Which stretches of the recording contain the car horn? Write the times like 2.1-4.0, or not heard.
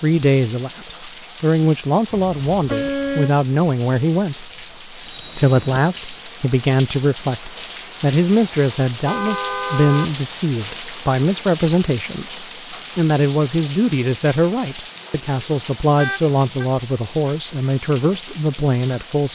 2.1-3.4, 9.1-10.1, 15.9-16.6.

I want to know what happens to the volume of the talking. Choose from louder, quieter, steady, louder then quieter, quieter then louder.
steady.